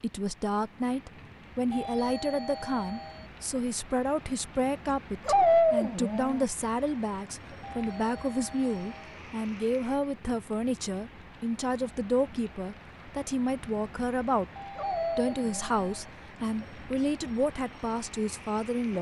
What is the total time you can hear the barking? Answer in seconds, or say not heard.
2 s.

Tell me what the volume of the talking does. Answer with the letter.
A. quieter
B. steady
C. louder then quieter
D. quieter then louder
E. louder
B.